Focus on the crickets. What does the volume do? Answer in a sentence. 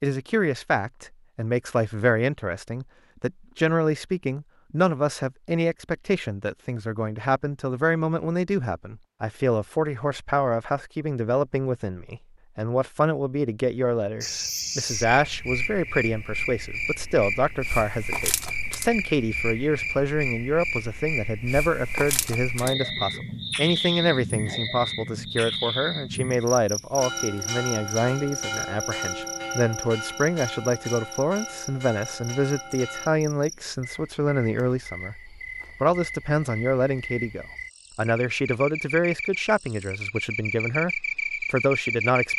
The volume of the crickets goes down, then up.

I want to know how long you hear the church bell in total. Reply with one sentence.
The church bell can be heard for 6 seconds in total.